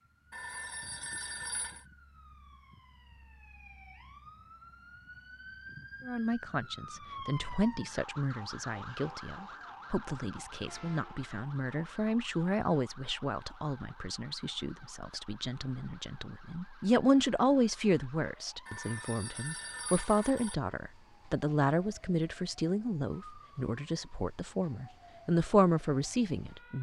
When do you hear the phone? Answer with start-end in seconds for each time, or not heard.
0.3-1.9, 18.6-20.6.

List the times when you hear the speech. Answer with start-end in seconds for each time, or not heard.
6.0-26.7.